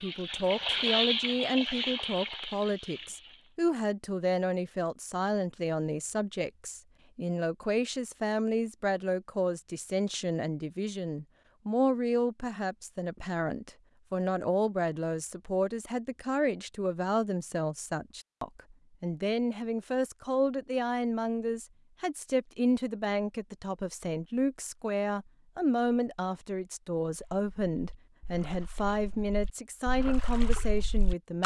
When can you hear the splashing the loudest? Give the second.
1 s.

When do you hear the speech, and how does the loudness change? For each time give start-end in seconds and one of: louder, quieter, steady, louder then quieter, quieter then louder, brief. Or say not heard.
0.0-31.4 steady.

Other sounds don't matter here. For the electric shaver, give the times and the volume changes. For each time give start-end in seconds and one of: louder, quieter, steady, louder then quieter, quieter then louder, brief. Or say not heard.
not heard.